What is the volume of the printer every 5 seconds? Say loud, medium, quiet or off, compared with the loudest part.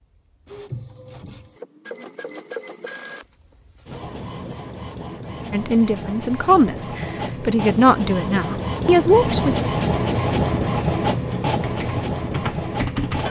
quiet, loud, loud.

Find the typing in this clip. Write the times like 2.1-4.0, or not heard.
11.6-13.2.